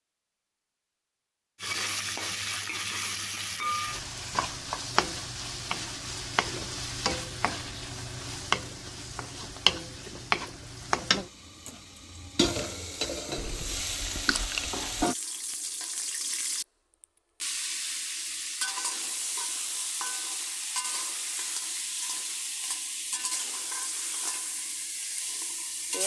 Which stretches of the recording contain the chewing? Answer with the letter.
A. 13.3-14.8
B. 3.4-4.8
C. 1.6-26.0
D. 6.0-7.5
A.